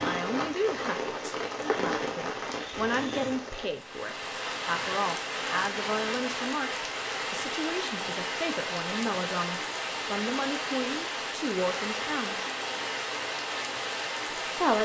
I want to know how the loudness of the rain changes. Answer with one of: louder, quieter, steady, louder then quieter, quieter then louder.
steady.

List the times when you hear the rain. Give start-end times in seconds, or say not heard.
0.0-14.8.